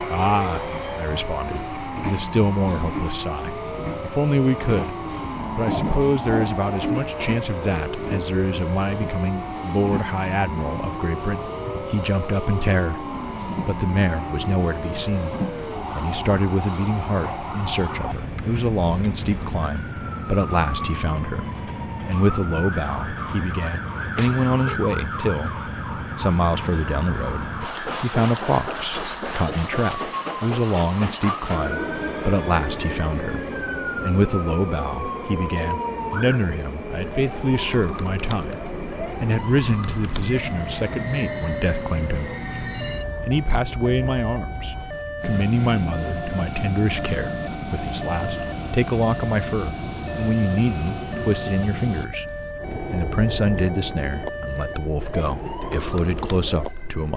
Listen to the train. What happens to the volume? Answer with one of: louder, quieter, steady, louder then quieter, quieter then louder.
steady.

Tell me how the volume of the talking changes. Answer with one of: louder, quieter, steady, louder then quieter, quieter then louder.
steady.